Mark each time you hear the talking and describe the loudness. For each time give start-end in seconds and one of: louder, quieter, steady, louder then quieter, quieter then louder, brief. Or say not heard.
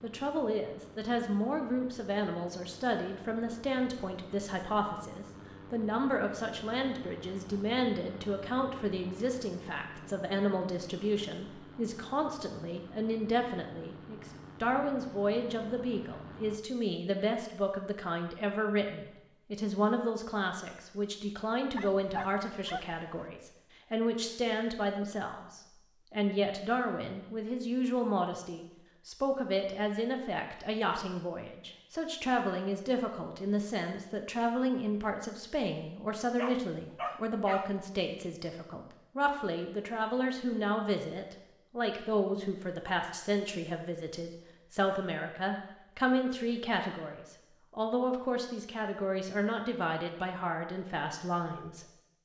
0.0-51.9 steady.